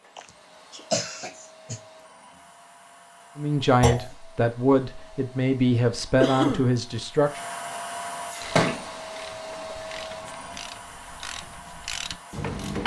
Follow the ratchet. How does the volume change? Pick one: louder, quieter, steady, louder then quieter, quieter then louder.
louder.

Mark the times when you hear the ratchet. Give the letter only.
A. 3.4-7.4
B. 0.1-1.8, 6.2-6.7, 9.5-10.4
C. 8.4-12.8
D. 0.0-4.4
C.